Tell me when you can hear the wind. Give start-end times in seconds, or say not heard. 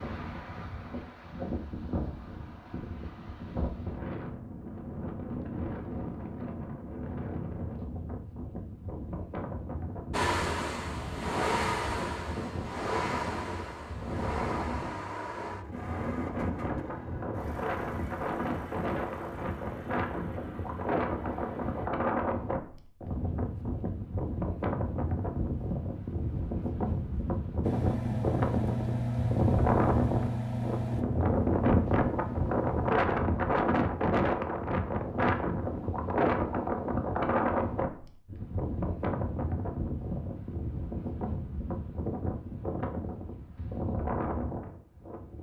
0.0-45.3.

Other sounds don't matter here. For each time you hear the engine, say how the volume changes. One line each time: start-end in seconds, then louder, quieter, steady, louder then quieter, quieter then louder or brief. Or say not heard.
10.1-21.9 quieter
27.6-33.0 quieter.